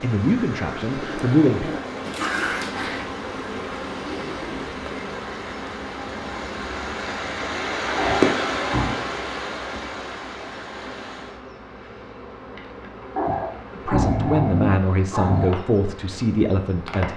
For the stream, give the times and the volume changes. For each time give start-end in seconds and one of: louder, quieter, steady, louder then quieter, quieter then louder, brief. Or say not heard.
0.0-11.4 louder then quieter.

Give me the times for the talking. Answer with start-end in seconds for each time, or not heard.
0.0-1.7, 13.7-17.1.